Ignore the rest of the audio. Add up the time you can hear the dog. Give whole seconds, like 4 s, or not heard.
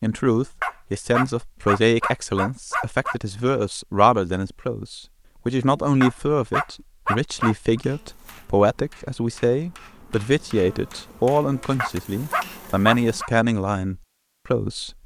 7 s.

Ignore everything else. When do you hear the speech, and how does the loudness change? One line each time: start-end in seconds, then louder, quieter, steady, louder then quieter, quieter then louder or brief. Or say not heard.
0.0-14.9 steady.